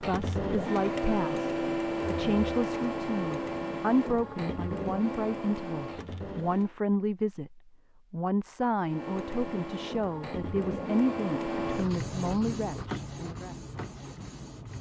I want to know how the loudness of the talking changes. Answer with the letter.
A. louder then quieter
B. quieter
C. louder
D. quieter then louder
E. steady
E.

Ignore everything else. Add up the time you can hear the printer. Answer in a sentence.
You can hear the printer for 13 seconds altogether.